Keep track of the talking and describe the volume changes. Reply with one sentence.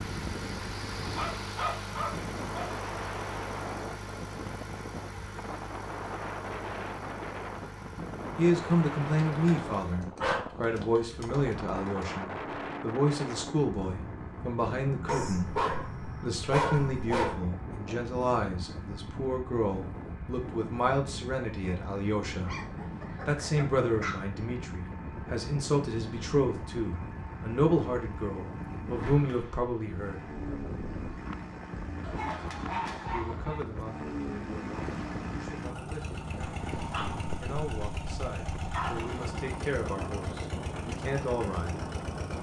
The volume of the talking goes down.